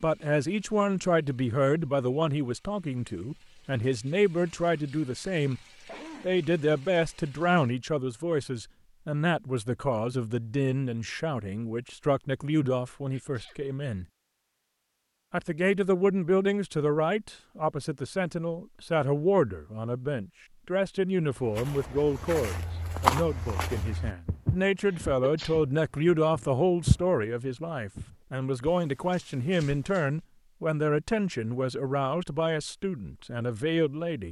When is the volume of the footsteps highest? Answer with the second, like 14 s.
23 s.